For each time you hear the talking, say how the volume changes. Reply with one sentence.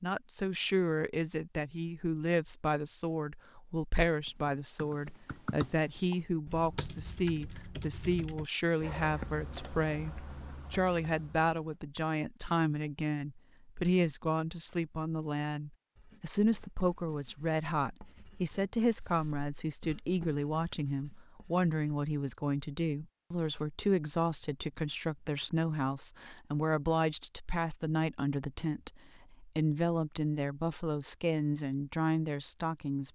You can hear the talking from 0.0 to 33.0 s, at a steady volume.